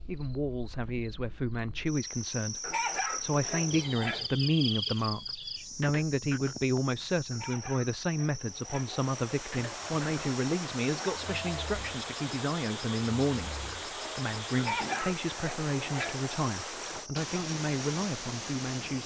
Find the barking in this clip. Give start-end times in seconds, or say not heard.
2.6-4.3, 7.3-8.9, 14.6-16.2.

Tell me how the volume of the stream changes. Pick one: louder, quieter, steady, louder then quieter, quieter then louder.
steady.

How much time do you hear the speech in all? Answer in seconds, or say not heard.
19 s.